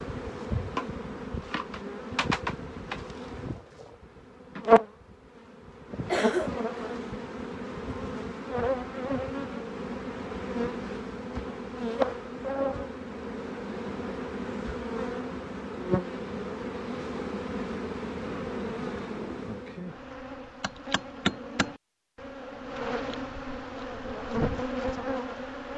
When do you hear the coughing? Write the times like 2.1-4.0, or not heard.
6.0-7.0.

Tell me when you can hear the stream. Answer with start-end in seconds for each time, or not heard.
not heard.